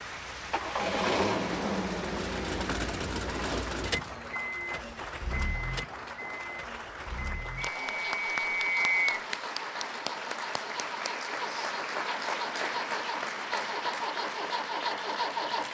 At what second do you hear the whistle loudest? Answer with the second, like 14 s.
9 s.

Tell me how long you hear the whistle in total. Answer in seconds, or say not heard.
2 s.